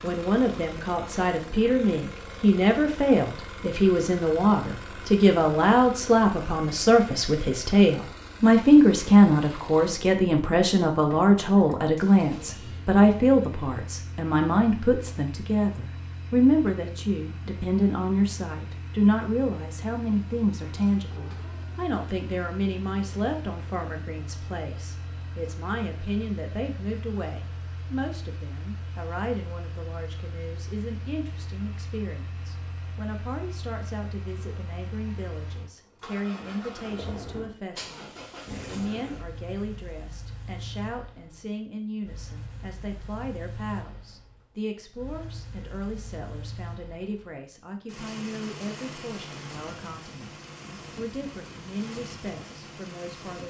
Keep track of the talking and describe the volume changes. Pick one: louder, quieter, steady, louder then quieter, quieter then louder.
quieter.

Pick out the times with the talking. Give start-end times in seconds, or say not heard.
0.0-53.4.